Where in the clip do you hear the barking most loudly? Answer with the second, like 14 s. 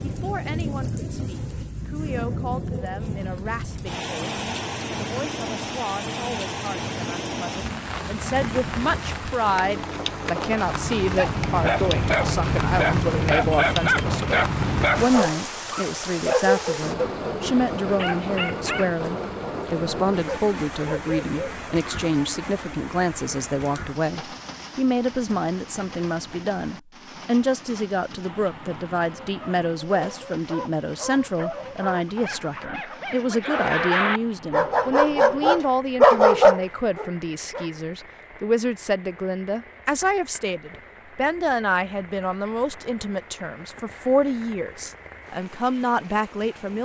36 s.